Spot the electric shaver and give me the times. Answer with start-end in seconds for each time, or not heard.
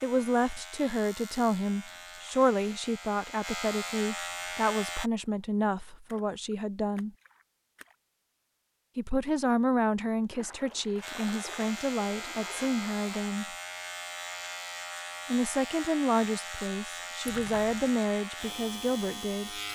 0.0-5.1, 11.0-19.7.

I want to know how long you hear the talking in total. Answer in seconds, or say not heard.
16 s.